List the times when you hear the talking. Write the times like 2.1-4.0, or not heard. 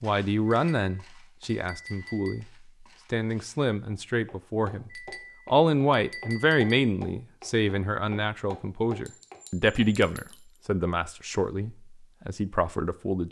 0.0-13.2.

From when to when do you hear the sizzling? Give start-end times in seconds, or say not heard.
not heard.